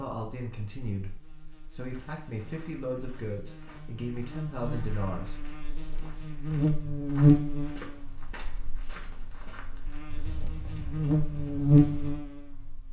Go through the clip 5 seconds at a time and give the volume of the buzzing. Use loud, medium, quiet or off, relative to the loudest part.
quiet, loud, loud.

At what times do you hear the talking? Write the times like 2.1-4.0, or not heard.
0.0-5.4.